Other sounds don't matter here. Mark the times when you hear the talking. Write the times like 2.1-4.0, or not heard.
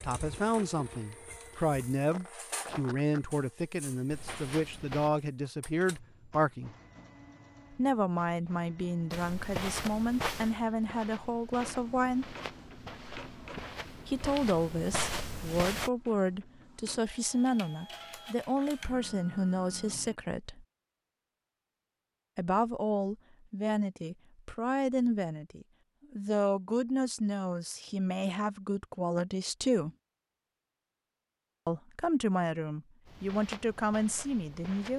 0.0-6.8, 7.7-12.3, 14.1-20.6, 22.4-29.9, 31.6-34.9.